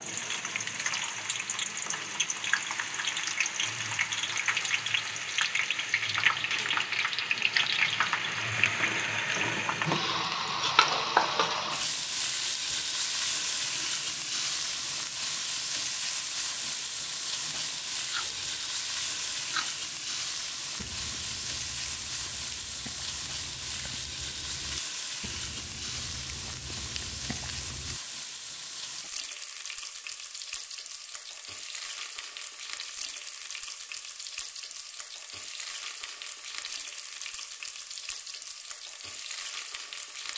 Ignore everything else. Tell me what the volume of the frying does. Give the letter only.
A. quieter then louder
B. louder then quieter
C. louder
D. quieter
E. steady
D.